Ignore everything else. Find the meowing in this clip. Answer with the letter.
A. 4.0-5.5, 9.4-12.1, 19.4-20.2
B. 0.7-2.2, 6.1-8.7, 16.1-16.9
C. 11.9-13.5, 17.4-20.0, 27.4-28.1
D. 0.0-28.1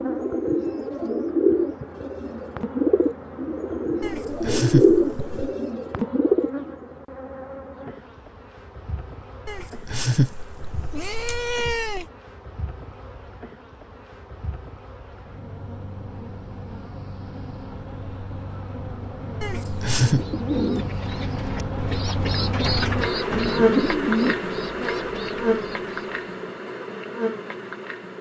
A.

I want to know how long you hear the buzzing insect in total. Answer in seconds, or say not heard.
28 s.